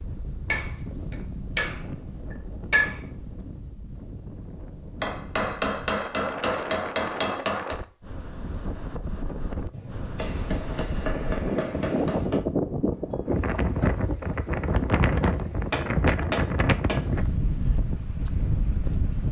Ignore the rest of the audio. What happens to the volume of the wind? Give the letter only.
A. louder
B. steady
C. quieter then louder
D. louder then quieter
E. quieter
A.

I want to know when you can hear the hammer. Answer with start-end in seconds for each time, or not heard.
0.5-3.1, 5.0-7.8, 9.7-12.4, 15.7-17.1.